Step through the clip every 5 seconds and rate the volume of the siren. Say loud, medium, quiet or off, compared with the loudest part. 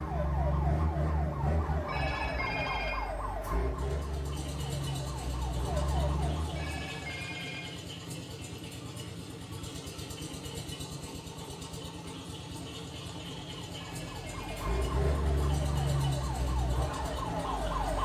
loud, loud, medium, loud.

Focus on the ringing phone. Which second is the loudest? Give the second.
3 s.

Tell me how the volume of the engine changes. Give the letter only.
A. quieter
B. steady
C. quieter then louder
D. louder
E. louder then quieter
B.